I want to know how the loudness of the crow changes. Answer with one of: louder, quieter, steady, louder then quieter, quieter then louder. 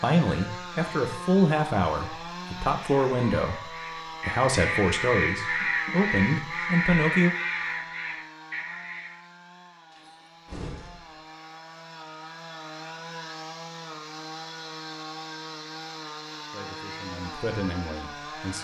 louder then quieter.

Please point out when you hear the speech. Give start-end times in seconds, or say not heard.
0.0-7.3, 16.5-18.5.